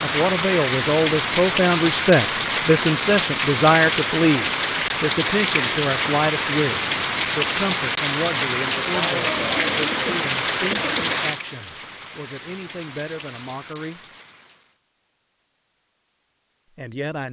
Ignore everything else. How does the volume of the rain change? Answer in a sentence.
The volume of the rain goes down.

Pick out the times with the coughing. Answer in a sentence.
You can hear the coughing from 8.7 to 11.2 s.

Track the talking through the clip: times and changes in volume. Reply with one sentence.
The talking can be heard from 0.0 to 14.0 s, getting quieter; and briefly from 16.8 to 17.2 s.